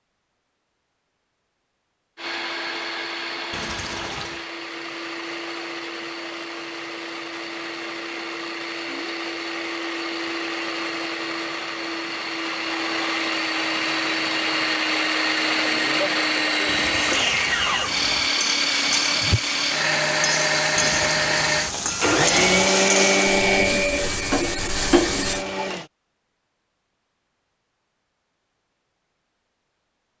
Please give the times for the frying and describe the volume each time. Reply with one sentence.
The frying can be heard from 17.1 to 25.4 s, getting louder.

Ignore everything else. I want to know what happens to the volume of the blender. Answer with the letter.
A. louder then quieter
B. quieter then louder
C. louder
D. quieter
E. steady
C.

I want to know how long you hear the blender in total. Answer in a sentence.
The blender can be heard for 24 seconds in total.